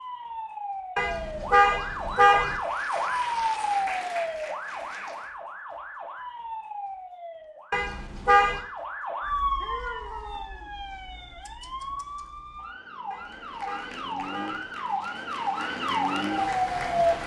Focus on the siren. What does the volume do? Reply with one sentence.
The loudness of the siren goes down, then up.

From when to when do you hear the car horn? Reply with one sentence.
You can hear the car horn from 0.9 to 2.6 s, from 7.7 to 8.6 s and from 13.1 to 14.8 s.